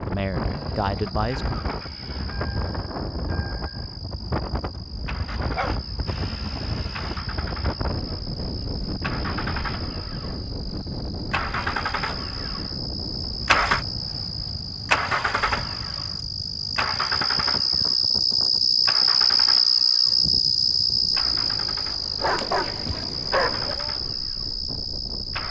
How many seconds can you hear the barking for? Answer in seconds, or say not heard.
4 s.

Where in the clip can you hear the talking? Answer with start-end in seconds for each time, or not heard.
0.0-1.6.